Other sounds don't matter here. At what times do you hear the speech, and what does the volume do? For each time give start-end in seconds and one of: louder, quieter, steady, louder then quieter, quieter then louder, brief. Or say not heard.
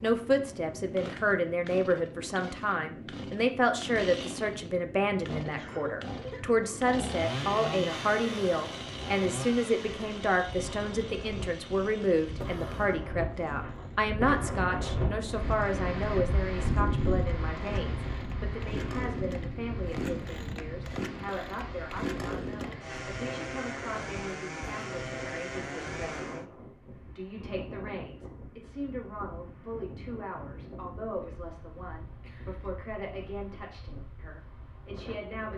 0.0-35.5 quieter.